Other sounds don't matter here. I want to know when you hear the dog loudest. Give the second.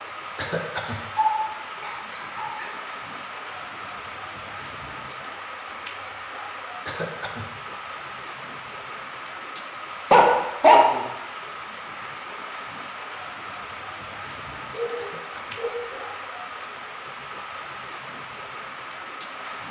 11 s.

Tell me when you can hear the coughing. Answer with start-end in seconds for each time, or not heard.
0.3-1.0, 6.8-7.5, 14.9-15.6.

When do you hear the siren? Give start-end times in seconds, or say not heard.
not heard.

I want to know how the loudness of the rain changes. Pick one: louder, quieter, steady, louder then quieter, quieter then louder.
steady.